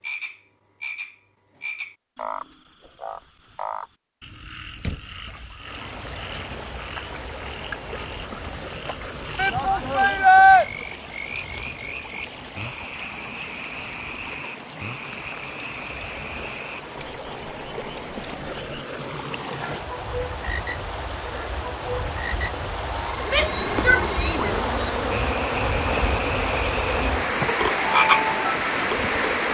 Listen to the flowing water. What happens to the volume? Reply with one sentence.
The volume of the flowing water goes up.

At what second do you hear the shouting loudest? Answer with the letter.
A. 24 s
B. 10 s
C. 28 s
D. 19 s
B.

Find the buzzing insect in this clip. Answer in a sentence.
You can hear the buzzing insect from 23.2 to 29.4 s.